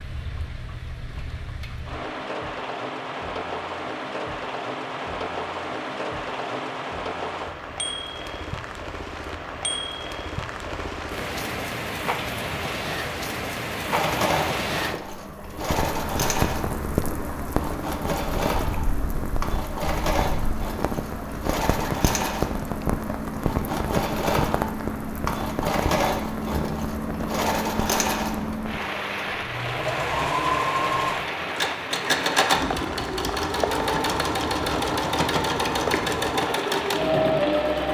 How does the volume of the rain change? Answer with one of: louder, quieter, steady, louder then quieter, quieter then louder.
steady.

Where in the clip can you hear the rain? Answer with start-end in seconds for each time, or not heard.
0.0-37.9.